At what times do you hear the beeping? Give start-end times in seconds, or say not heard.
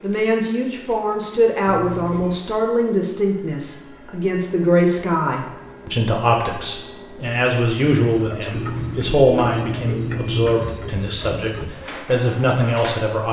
1.6-2.4, 8.5-10.6.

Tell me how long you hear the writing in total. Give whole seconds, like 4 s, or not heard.
not heard.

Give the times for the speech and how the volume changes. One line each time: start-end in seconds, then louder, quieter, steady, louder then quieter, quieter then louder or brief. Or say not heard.
0.0-13.2 steady.